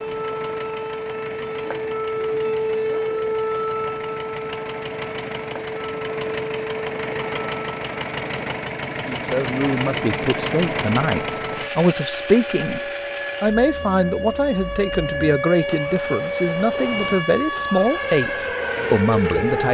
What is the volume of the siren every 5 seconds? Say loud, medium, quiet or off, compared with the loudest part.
loud, medium, medium, loud.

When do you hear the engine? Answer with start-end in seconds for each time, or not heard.
0.0-19.6.